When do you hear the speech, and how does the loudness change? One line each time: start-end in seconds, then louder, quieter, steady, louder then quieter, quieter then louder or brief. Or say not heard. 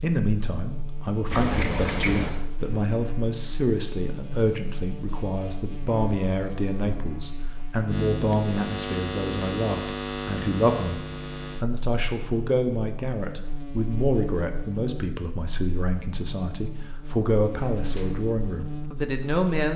0.0-19.7 steady.